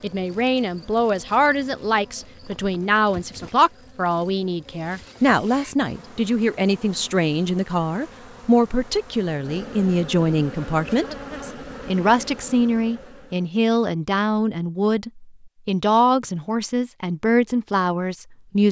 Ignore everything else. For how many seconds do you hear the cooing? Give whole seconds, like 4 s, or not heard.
not heard.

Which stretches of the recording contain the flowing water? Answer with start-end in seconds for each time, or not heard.
not heard.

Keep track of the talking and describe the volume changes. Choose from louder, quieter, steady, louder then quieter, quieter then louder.
steady.